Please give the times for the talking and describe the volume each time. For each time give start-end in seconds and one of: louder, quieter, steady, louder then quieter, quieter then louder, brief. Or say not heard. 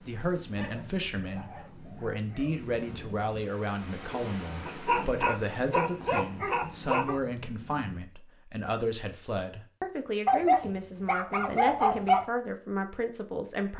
0.1-13.7 steady.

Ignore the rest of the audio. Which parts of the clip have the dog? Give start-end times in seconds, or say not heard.
0.6-2.5, 4.7-7.2, 10.2-12.2.